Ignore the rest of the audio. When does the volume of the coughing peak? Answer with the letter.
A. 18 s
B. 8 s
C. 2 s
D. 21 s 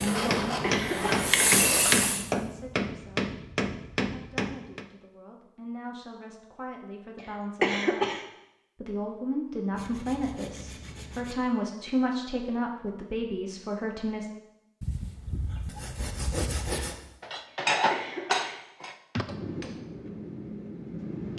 B.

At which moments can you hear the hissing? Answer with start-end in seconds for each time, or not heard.
0.0-2.3.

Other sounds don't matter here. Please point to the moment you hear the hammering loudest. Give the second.
18 s.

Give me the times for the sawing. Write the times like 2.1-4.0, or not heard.
0.1-2.1, 9.7-11.3, 14.8-16.9.